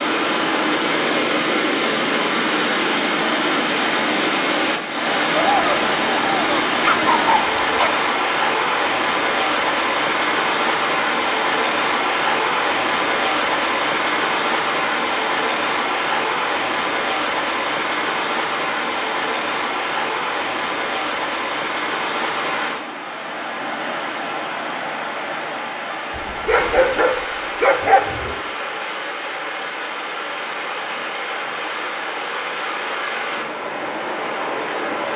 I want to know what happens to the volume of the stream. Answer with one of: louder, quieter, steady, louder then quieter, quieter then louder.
quieter.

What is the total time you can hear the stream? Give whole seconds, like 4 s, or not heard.
35 s.